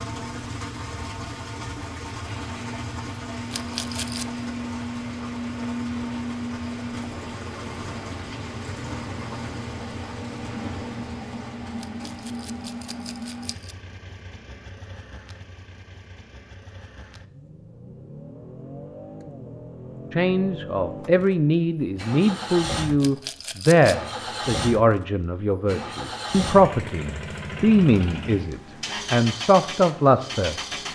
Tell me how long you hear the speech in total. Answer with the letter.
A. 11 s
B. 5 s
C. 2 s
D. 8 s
A.